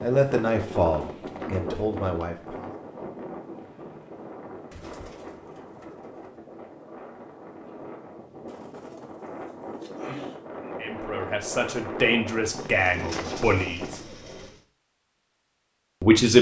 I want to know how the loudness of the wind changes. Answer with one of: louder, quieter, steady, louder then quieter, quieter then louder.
quieter then louder.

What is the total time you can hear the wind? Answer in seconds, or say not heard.
14 s.